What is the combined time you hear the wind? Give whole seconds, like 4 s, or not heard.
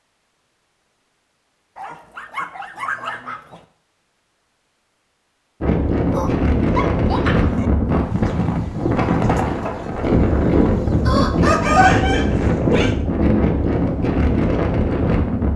10 s.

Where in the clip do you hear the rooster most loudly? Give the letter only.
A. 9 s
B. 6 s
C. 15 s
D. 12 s
D.